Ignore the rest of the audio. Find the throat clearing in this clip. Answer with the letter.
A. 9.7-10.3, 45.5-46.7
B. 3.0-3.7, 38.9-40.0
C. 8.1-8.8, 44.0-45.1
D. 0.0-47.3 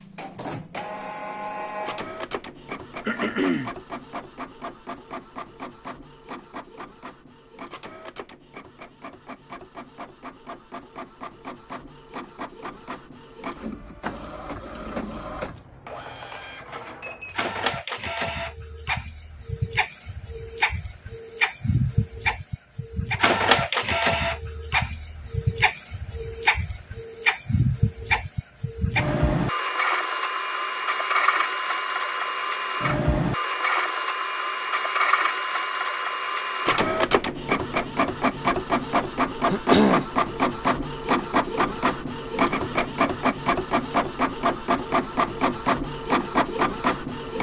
B.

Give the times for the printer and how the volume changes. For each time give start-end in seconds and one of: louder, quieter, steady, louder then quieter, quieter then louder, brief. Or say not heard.
0.0-47.3 louder.